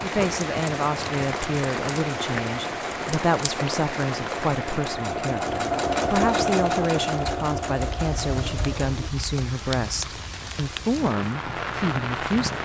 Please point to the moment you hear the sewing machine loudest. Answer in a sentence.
The loudest moment of the sewing machine is at 6 seconds.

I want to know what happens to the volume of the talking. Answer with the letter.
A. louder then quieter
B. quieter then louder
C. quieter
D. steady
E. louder
D.